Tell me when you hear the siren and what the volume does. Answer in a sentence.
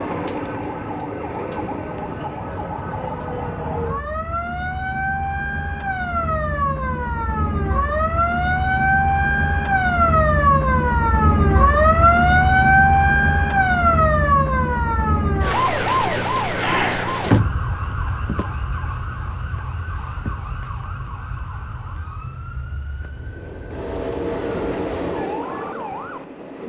You can hear the siren from 0.0 to 26.6 s, getting louder then quieter.